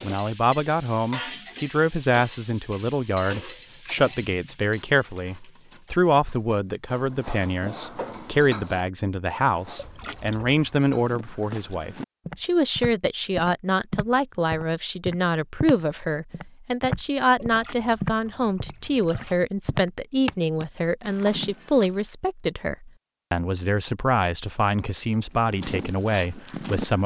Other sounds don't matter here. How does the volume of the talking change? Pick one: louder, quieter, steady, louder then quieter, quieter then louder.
steady.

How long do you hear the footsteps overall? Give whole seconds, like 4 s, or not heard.
13 s.